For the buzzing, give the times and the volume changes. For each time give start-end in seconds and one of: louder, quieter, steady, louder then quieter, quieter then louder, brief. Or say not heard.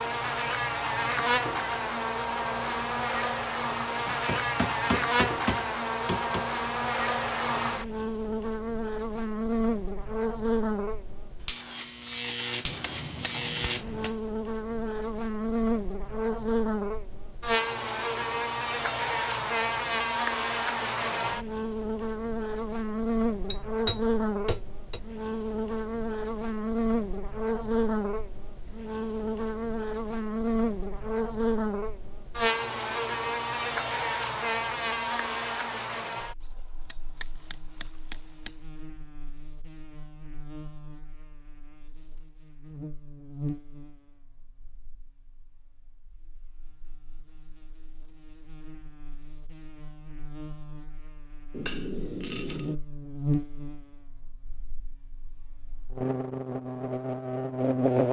0.0-58.0 quieter.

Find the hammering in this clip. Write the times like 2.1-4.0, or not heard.
4.0-6.5, 12.7-14.2, 23.5-25.0, 36.5-38.5, 51.5-52.8.